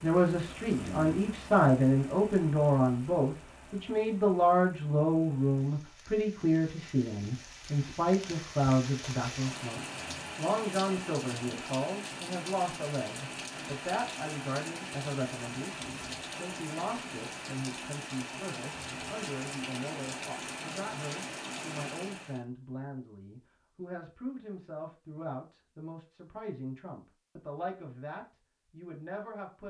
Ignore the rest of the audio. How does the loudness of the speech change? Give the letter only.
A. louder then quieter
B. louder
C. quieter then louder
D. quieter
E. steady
D.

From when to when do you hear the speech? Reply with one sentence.
The speech can be heard from 0.0 to 29.6 s.